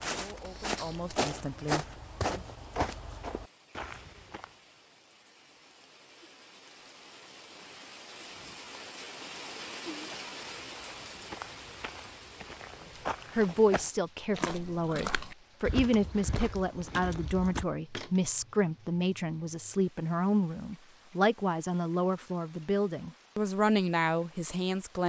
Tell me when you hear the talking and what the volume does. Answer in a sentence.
The talking can be heard briefly from 0.1 to 2.4 s; and from 13.3 to 25.0 s, at a steady volume.